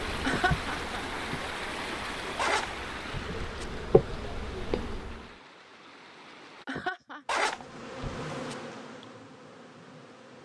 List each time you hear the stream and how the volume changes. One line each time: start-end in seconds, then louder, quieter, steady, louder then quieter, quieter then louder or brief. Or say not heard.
0.0-6.7 quieter.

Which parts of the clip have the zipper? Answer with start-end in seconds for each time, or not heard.
2.4-3.6, 7.2-8.6.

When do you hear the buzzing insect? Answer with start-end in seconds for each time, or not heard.
0.0-5.3, 7.2-10.4.